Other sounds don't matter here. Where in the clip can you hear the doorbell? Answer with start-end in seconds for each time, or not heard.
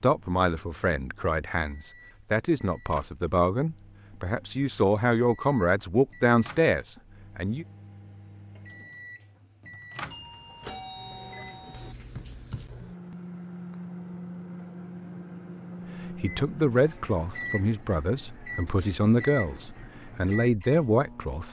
10.1-11.9.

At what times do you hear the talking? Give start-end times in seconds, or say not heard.
0.0-7.7, 16.1-21.4.